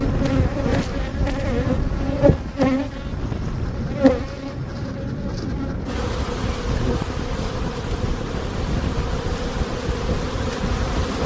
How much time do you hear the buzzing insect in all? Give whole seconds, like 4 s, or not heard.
11 s.